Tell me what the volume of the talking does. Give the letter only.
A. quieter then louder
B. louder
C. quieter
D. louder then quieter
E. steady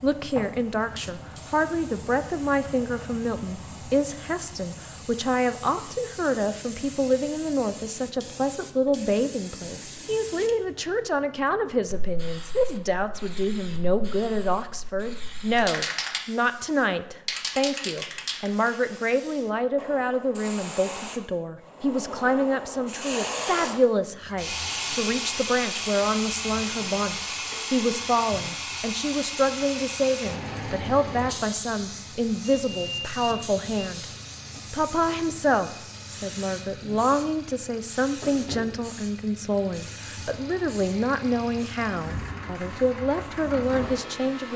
E.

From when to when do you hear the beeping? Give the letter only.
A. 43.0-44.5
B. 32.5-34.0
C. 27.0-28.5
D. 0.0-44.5
B.